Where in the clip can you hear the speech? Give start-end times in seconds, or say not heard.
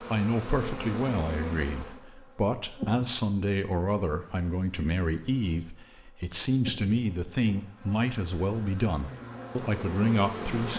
0.0-10.7.